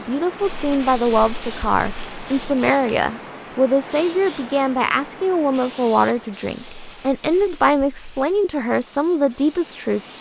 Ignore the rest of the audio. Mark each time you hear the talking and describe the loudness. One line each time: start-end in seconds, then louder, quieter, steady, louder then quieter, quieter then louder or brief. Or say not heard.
0.0-10.1 steady.